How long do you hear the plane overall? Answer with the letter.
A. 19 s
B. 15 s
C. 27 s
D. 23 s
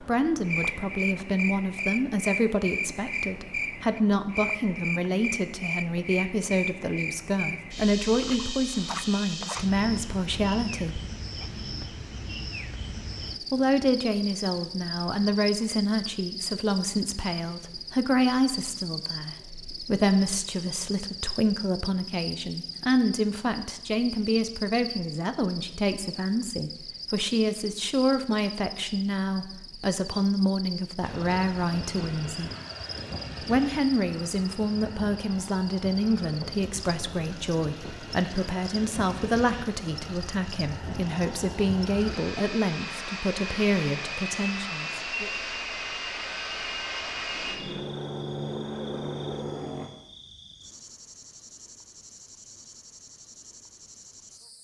A.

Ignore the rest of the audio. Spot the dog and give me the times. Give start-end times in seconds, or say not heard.
not heard.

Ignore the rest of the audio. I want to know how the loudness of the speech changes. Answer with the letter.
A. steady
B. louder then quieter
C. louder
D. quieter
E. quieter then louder
A.